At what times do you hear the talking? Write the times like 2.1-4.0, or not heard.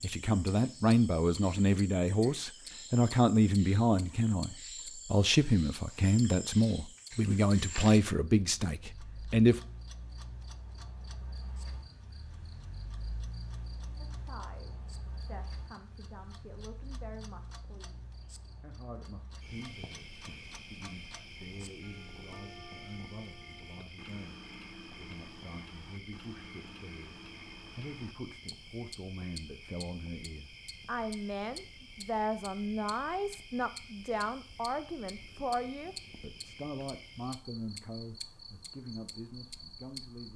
0.0-9.6, 13.9-40.3.